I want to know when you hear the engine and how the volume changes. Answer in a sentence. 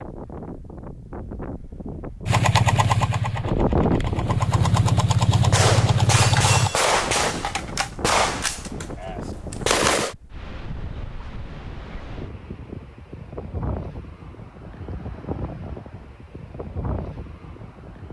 You can hear the engine from 2.2 to 6.7 s, getting quieter then louder.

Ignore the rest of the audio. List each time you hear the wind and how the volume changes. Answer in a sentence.
The wind can be heard from 0.0 to 18.0 s, getting quieter.